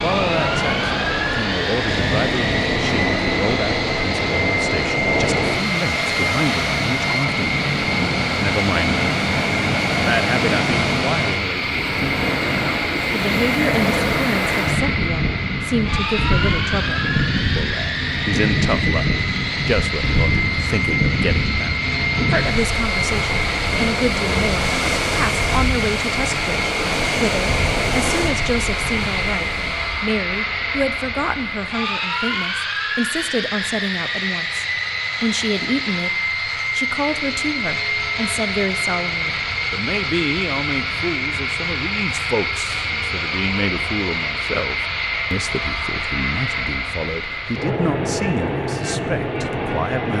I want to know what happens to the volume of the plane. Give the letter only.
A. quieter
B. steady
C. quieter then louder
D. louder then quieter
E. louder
B.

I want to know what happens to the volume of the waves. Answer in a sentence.
The volume of the waves stays about the same.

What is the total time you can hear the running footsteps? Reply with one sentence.
The running footsteps can't be heard in this clip.